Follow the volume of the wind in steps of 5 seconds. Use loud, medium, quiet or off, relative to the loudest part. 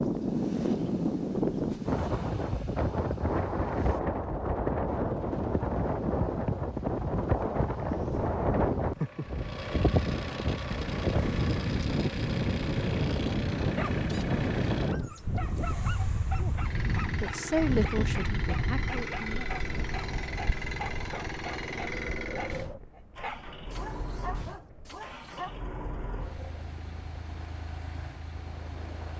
loud, loud, loud, medium, quiet, quiet.